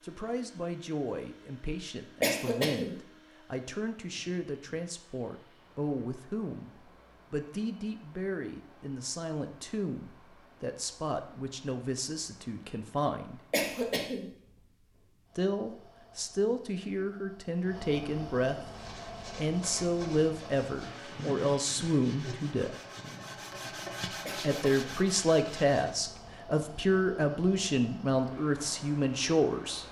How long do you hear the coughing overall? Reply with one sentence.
You can hear the coughing for 2 seconds altogether.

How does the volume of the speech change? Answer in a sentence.
The loudness of the speech goes up.